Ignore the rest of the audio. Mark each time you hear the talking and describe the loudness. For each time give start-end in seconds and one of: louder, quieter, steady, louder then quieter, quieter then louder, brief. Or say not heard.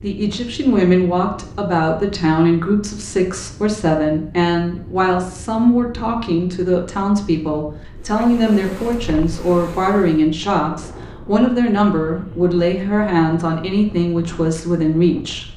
0.0-15.4 steady.